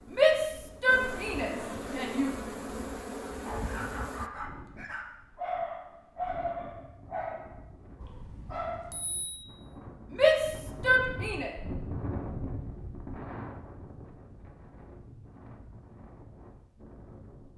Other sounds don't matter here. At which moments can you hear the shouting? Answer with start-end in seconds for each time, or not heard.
0.1-2.3, 10.1-11.5.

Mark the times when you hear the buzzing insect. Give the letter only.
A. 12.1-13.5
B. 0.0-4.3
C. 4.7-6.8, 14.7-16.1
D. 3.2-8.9
B.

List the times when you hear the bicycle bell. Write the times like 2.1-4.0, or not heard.
8.0-9.4.